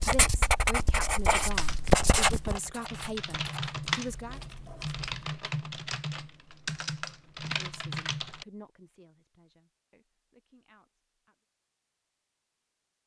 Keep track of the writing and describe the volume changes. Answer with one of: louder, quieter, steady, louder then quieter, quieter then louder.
quieter.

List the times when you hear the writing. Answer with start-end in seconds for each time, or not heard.
0.0-5.2.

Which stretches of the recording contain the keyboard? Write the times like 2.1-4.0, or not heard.
1.4-8.4.